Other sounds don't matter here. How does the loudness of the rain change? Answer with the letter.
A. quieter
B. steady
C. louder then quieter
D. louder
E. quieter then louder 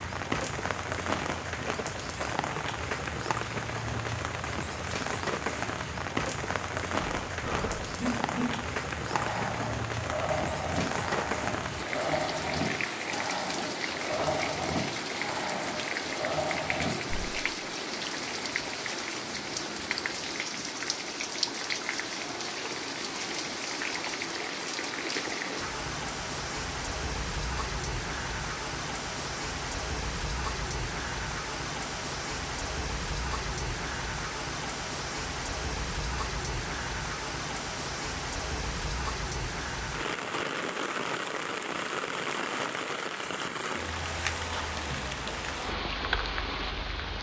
B.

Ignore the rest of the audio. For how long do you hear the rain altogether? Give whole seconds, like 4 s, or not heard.
47 s.